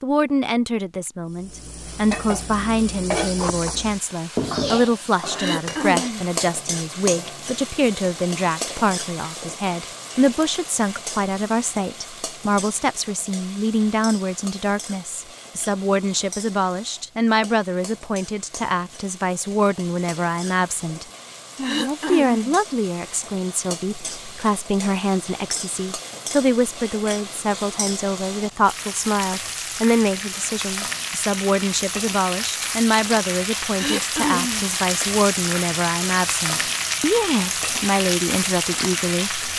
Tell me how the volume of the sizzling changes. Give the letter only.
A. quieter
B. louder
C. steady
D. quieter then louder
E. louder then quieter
D.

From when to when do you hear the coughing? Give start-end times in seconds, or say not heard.
5.3-6.3, 21.6-22.6, 33.8-34.7.